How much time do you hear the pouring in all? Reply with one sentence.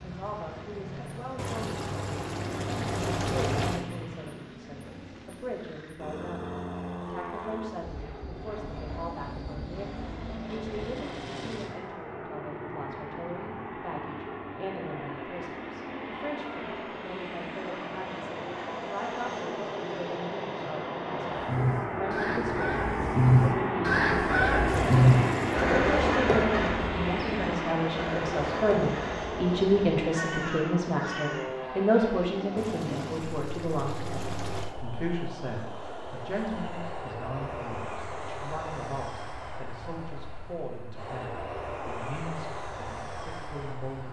You can hear the pouring for 6 seconds altogether.